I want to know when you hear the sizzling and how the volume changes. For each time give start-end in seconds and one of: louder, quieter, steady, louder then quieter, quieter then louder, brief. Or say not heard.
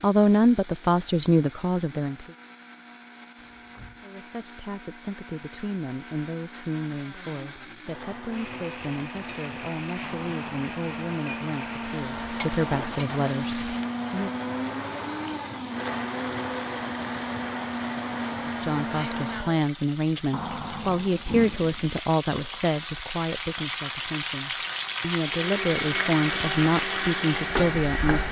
8.3-28.2 louder.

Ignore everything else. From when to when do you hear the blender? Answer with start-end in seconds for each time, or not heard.
0.0-19.6, 25.2-28.2.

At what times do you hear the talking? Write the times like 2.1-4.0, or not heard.
0.0-2.3, 4.0-14.3, 18.4-28.2.